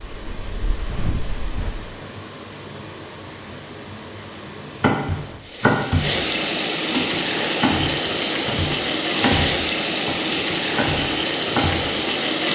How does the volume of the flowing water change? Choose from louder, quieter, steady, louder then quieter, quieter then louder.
louder.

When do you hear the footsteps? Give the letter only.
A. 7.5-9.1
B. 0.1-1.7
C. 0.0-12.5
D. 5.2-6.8
B.